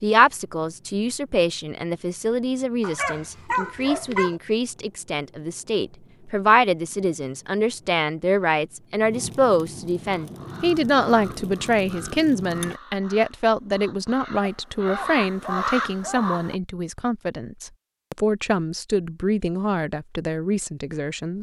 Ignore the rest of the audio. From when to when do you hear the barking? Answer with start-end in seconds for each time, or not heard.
2.8-4.3, 14.4-16.2.